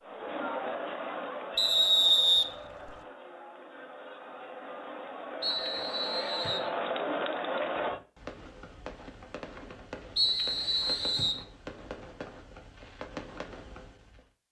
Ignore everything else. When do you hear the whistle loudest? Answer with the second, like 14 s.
2 s.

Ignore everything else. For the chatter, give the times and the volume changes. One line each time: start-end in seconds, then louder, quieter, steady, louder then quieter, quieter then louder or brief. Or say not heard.
0.0-8.0 quieter then louder.